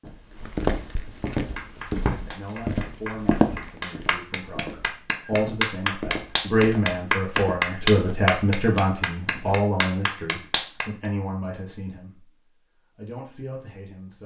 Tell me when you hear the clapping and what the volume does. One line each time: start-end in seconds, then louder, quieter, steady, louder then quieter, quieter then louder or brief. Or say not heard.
1.3-10.9 louder then quieter.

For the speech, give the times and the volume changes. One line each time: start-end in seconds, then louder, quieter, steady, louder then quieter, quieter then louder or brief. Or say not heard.
2.0-12.3 louder then quieter
12.9-14.2 brief.